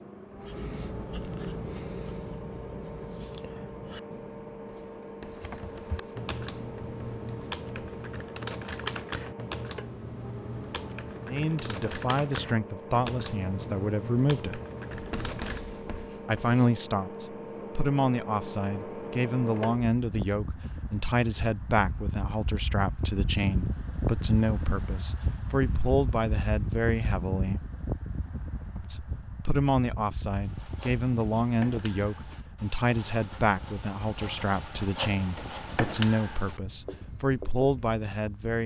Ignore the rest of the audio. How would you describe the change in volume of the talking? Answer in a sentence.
The loudness of the talking stays about the same.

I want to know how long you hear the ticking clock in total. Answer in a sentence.
You can't hear the ticking clock here.